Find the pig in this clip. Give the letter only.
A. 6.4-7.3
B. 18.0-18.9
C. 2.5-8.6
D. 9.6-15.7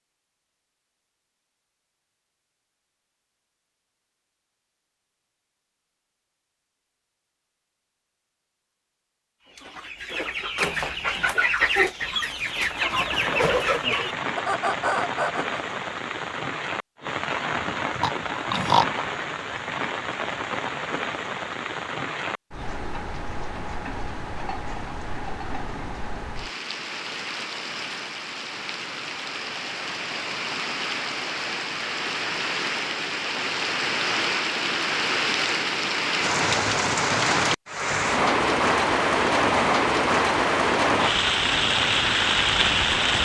B.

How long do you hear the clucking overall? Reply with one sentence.
You can hear the clucking for 6 seconds altogether.